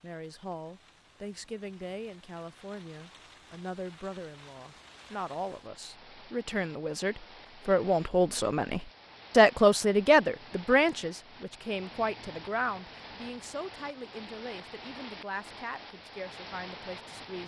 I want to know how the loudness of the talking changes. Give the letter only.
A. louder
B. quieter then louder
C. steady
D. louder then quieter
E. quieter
D.